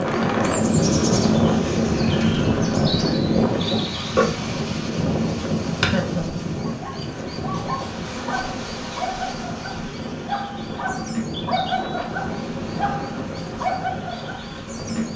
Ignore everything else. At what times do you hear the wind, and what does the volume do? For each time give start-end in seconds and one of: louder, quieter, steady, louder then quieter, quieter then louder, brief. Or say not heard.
0.0-15.1 quieter.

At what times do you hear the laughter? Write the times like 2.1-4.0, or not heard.
5.8-6.4.